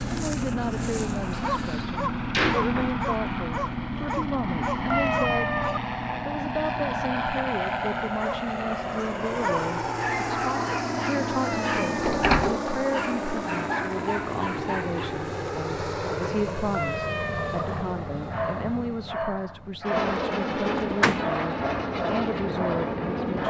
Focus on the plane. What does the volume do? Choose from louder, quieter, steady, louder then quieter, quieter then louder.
steady.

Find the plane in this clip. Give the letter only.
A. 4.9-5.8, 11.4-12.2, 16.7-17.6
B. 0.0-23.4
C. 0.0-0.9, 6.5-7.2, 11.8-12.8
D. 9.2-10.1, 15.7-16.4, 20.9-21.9
B.